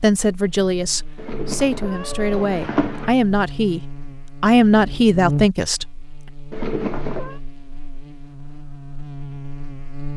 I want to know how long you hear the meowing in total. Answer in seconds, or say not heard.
3 s.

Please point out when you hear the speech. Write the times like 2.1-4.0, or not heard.
0.0-3.8, 4.4-5.8.